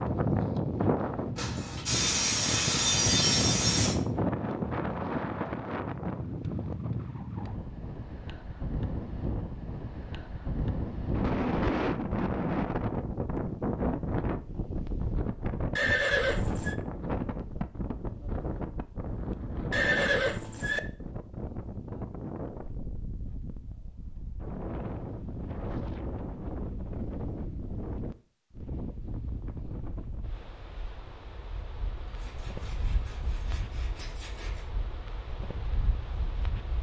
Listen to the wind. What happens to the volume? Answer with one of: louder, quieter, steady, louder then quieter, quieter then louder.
quieter.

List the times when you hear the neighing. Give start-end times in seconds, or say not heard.
15.8-16.8, 19.7-20.8.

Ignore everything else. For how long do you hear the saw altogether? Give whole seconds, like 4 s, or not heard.
5 s.